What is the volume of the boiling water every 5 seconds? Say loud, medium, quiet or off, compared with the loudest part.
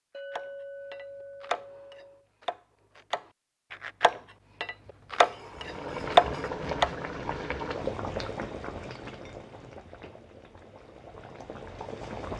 off, loud, medium.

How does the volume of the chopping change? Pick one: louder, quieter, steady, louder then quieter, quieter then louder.
quieter then louder.